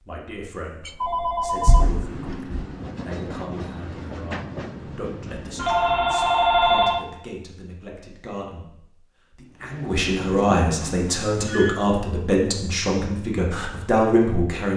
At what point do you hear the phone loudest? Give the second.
7 s.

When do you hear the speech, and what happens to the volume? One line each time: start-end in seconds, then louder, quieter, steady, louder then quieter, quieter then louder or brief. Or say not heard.
0.0-14.7 louder.